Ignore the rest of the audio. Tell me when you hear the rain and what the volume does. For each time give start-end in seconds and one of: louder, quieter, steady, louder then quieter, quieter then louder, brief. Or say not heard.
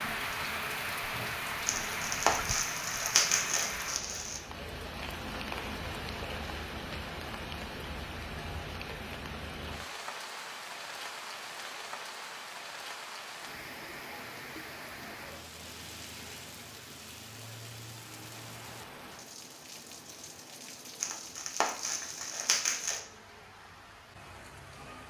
0.0-25.0 quieter.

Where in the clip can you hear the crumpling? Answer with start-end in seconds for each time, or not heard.
1.6-4.4, 21.0-23.1.